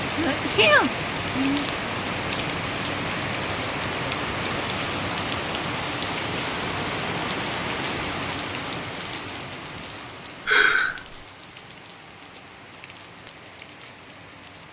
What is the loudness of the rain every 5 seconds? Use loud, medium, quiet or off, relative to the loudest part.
loud, loud, quiet.